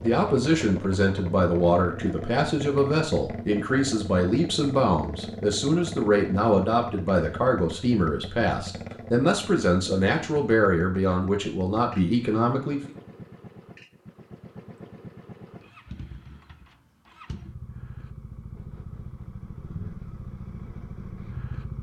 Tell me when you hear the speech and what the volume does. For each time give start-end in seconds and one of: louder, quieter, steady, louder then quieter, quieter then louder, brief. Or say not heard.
0.0-12.8 steady.